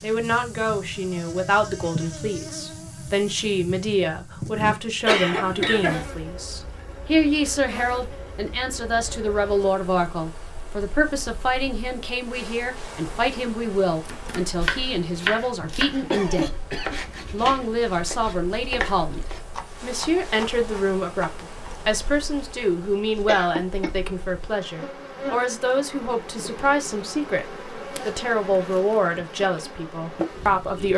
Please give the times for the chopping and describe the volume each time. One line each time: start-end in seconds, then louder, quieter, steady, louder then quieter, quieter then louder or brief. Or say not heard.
14.1-21.7 quieter.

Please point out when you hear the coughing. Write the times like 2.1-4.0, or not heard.
5.0-6.0, 16.1-16.9, 23.2-23.9.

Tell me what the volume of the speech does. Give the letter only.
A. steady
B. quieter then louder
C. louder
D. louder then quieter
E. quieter
A.